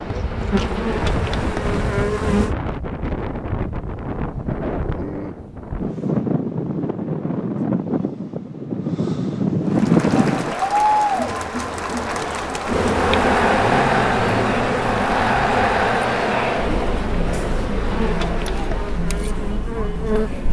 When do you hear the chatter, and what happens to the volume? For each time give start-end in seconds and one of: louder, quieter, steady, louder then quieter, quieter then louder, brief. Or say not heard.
9.7-20.4 quieter.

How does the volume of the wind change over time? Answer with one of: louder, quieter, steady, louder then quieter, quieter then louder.
louder.